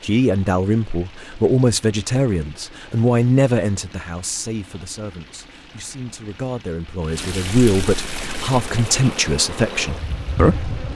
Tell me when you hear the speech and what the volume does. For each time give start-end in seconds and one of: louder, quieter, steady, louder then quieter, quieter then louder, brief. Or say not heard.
0.0-10.7 quieter then louder.